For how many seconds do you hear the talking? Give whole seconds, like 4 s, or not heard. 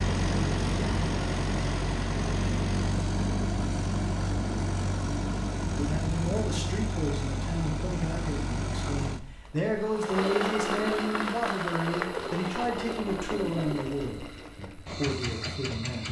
10 s.